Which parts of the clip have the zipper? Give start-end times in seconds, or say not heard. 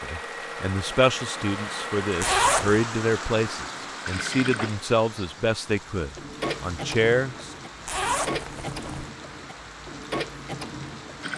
2.2-2.8, 7.8-9.1.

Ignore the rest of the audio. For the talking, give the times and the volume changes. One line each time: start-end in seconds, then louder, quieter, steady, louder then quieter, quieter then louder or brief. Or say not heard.
0.0-7.5 steady.